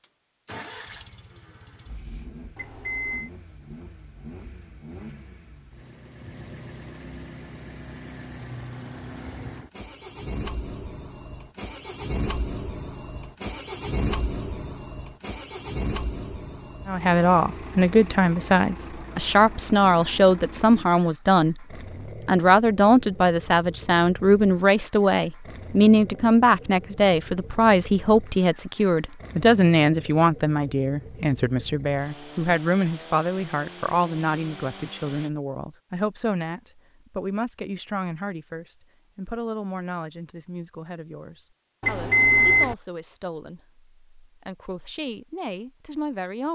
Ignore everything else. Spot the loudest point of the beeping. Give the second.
42 s.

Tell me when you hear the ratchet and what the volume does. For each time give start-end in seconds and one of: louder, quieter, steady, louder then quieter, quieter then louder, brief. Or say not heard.
not heard.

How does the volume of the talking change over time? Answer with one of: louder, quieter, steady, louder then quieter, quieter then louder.
quieter.